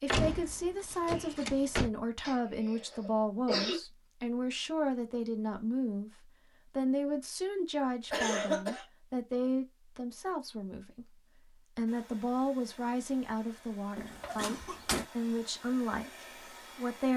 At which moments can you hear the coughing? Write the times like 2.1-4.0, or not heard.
2.2-3.8, 8.1-8.8, 14.3-14.8.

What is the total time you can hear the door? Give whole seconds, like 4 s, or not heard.
3 s.